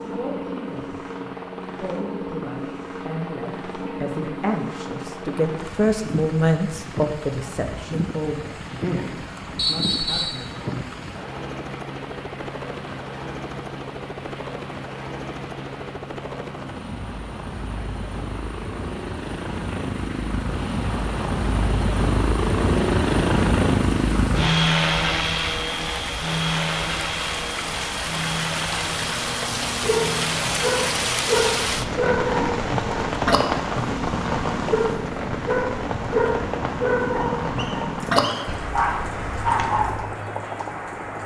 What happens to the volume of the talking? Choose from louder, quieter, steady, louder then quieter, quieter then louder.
louder then quieter.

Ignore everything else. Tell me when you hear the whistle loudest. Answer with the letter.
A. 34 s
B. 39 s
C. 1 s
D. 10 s
D.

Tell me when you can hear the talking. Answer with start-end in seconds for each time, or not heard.
0.1-10.9.